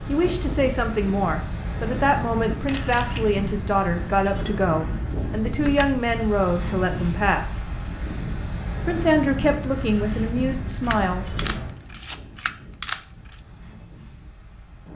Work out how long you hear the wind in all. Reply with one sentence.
You can hear the wind for 15 seconds altogether.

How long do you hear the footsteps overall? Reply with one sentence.
You can't hear the footsteps here.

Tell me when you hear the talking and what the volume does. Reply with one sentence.
The talking can be heard from 0.0 to 7.6 s, at a steady volume; and briefly from 8.8 to 11.4 s.